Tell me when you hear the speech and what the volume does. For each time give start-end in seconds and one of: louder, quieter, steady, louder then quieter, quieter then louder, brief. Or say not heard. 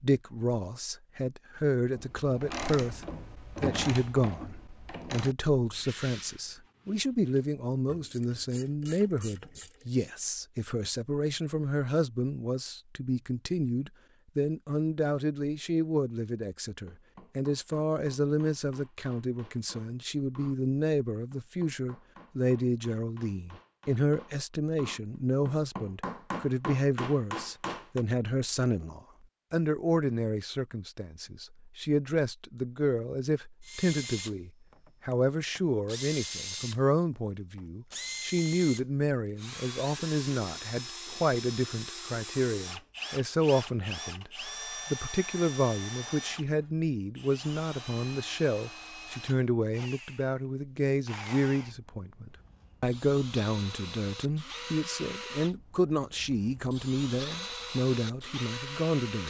0.0-59.2 steady.